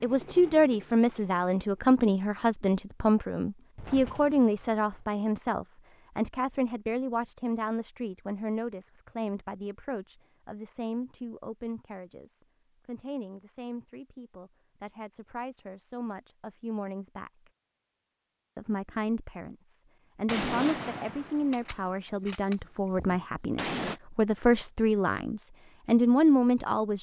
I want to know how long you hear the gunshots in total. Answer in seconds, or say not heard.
5 s.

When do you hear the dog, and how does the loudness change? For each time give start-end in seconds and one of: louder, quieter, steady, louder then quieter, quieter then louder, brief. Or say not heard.
not heard.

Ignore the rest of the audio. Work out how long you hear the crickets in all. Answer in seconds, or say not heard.
not heard.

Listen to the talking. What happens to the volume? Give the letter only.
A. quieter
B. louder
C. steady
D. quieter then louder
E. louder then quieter
D.